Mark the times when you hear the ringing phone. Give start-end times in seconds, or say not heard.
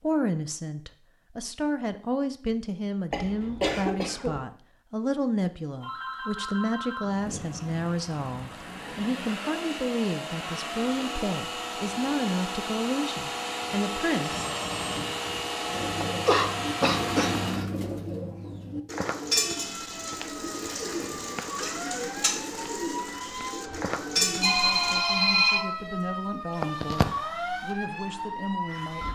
5.8-7.0, 14.2-15.1, 24.4-25.6.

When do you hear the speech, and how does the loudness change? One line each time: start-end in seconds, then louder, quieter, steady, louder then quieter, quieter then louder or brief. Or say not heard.
0.0-14.4 steady
24.1-29.0 steady.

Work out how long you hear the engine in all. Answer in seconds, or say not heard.
11 s.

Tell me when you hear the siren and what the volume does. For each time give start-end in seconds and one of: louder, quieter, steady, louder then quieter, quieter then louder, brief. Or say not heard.
19.4-29.0 louder.